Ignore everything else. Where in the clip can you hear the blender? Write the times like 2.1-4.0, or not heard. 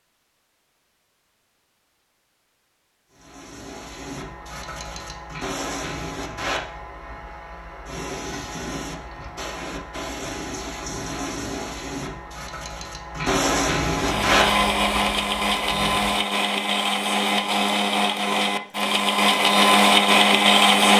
13.9-20.9.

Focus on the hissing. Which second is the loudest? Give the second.
14 s.